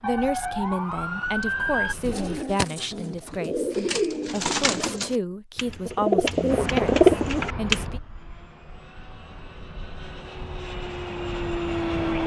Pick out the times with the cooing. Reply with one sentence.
The cooing can be heard from 2.0 to 7.8 s.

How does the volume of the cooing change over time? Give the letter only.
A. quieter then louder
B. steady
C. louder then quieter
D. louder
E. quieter
D.